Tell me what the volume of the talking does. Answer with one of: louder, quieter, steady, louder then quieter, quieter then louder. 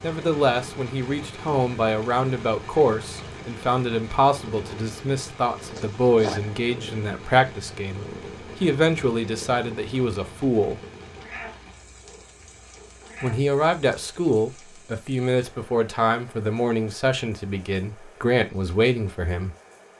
steady.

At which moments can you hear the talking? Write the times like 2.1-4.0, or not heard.
0.0-10.8, 13.2-19.6.